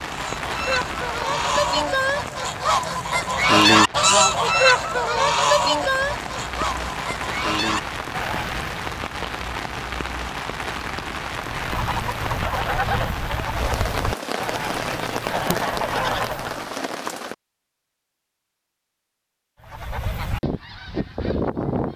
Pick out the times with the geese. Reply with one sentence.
The geese can be heard from 0.1 to 8.8 s, from 11.3 to 16.7 s and from 19.6 to 21.9 s.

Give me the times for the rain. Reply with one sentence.
The rain can be heard from 0.0 to 17.4 s.